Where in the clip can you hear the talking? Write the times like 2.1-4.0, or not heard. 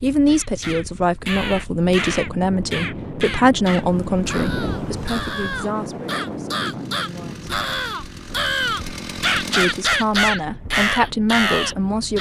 0.0-7.5, 9.5-12.1.